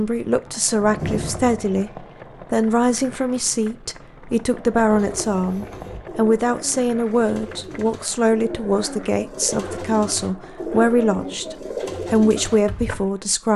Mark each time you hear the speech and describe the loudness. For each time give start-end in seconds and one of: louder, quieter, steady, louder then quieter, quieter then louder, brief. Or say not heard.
0.0-13.5 steady.